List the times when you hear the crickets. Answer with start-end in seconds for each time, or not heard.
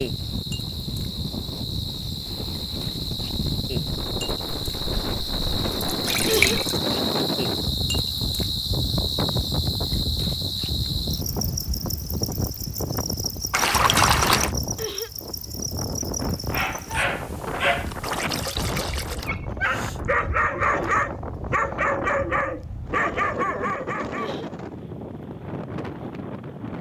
0.0-17.1.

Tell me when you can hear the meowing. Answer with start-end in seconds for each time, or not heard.
not heard.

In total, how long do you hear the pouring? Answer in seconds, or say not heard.
5 s.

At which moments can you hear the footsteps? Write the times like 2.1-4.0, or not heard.
not heard.